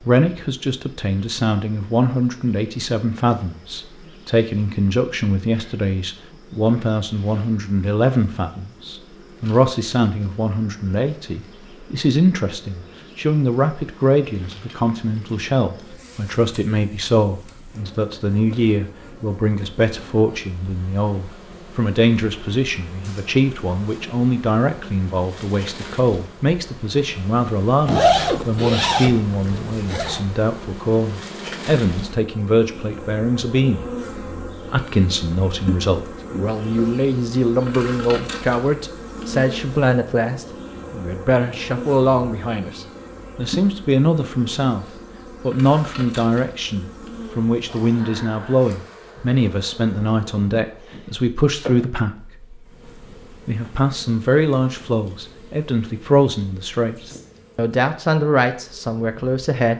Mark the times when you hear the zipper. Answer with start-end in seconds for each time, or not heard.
27.9-30.2.